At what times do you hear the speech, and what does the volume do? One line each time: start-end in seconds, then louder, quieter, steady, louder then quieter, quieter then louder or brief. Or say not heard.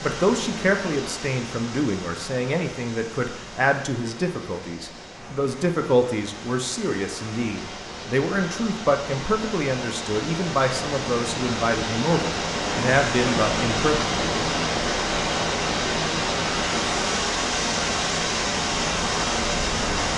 0.0-13.9 steady.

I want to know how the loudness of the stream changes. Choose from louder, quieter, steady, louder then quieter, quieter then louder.
louder.